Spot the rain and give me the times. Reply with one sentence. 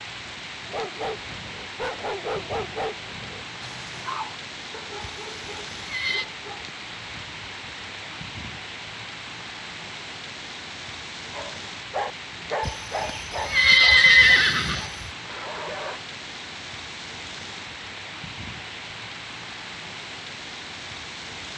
You can hear the rain from 0.0 to 21.5 s.